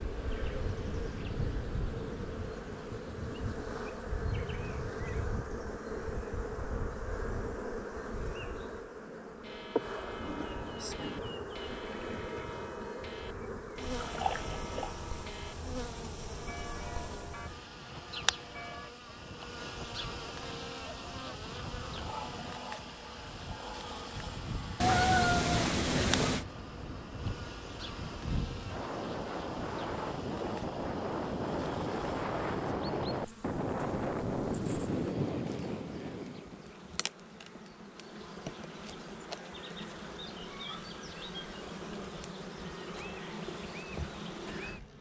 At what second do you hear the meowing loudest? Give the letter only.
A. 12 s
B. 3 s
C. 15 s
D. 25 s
D.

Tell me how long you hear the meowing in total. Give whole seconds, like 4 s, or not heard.
3 s.